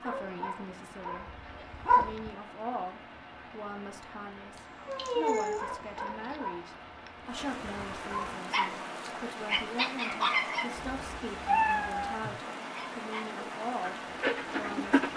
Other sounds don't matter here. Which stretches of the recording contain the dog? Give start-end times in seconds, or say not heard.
0.0-2.4, 5.5-10.7, 12.6-15.1.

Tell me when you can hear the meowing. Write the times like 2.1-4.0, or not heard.
4.5-5.6, 10.8-12.3.